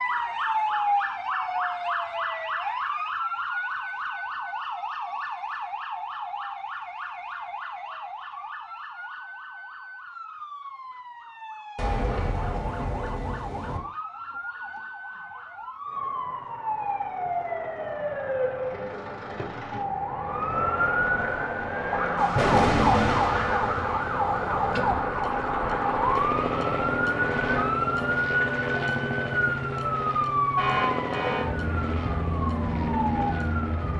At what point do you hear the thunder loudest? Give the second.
23 s.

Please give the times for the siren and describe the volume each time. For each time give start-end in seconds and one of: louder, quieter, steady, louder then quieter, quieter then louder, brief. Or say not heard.
0.0-33.9 quieter then louder.